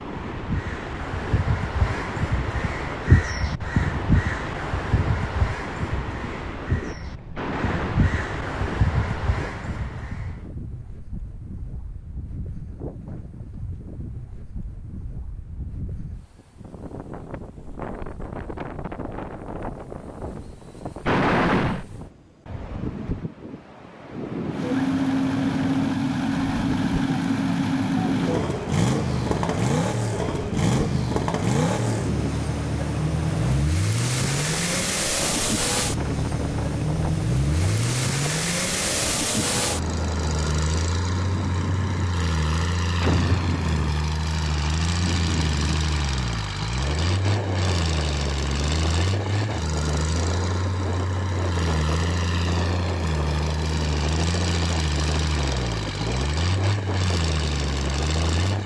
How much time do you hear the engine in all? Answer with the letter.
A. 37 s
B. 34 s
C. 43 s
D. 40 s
B.